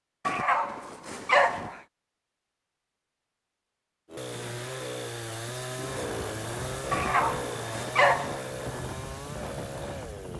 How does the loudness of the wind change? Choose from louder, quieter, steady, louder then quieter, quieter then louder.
louder.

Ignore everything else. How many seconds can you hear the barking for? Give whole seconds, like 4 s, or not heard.
3 s.